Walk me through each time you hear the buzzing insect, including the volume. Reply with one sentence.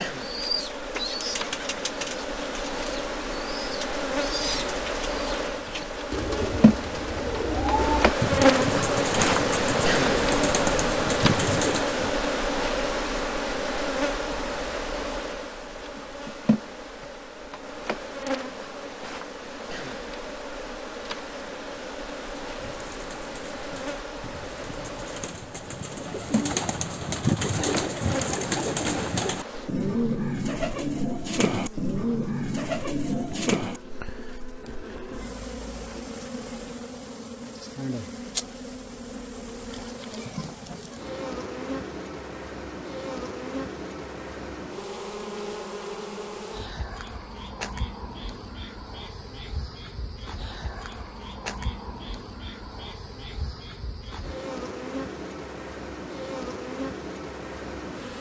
You can hear the buzzing insect from 0.0 to 58.1 s, getting quieter.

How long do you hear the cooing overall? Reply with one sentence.
You can hear the cooing for 23 seconds altogether.